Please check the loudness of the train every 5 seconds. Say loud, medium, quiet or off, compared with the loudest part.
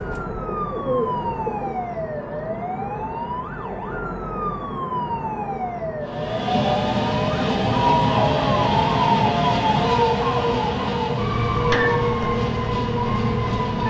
off, loud, loud.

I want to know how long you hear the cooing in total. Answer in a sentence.
The cooing can be heard for 2 seconds in total.